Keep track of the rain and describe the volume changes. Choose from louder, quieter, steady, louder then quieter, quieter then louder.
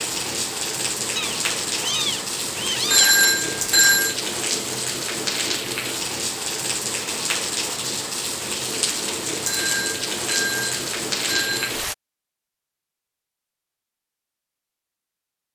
steady.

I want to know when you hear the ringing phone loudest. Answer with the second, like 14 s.
3 s.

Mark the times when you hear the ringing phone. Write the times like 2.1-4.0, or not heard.
2.9-4.2, 9.4-11.7.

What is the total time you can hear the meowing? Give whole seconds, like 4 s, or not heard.
2 s.